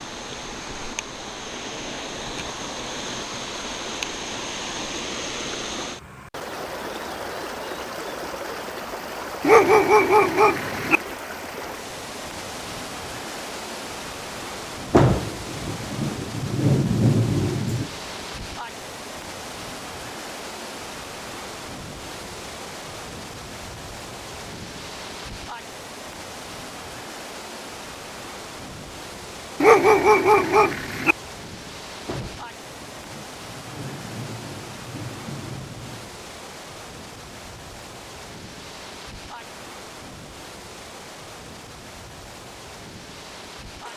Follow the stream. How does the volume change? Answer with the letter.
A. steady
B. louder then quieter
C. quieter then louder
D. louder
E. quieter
E.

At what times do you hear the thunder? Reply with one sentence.
The thunder can be heard from 14.9 to 17.9 s and from 32.0 to 36.1 s.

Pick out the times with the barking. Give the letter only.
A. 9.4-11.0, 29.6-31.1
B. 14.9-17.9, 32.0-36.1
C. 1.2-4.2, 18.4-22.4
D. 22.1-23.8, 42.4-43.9
A.